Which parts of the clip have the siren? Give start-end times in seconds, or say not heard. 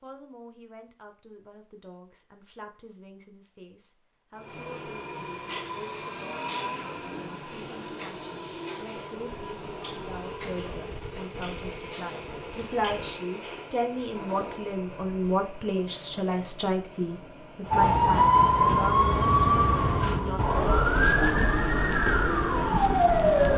17.7-23.5.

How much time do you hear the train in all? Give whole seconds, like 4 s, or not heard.
19 s.